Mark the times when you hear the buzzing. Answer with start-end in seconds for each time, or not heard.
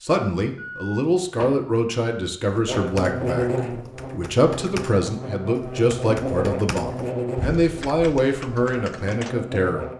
2.6-9.9.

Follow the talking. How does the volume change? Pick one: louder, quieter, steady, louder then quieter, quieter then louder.
steady.